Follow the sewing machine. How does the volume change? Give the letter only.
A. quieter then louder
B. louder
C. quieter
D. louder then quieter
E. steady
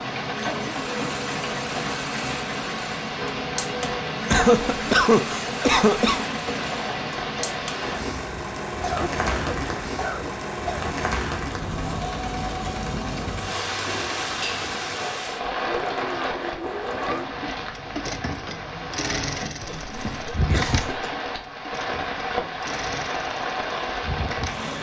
E.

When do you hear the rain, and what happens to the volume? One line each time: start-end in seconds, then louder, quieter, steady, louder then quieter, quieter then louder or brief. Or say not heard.
0.0-24.7 steady.